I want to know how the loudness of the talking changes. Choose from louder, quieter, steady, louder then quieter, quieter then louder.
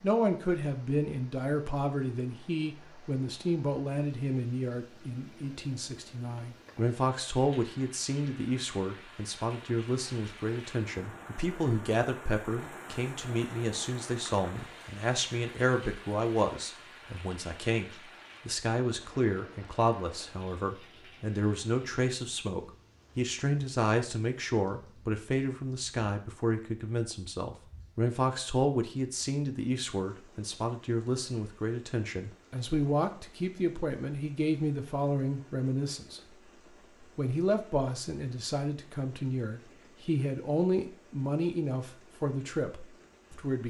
steady.